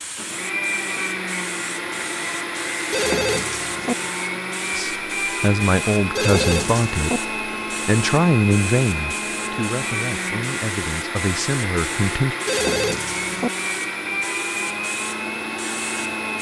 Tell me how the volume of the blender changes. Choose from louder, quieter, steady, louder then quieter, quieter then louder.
steady.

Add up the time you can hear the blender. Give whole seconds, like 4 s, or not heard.
16 s.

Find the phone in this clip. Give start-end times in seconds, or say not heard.
2.9-4.0, 6.2-7.2, 12.4-13.5.